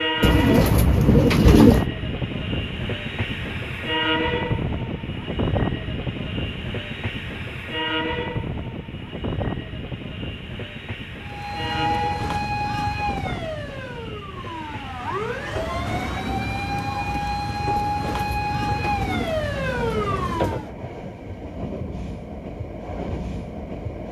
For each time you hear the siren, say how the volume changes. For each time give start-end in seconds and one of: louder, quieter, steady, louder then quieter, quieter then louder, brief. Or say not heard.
11.2-20.7 quieter then louder.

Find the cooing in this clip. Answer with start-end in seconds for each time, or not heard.
0.2-1.9, 17.8-20.8.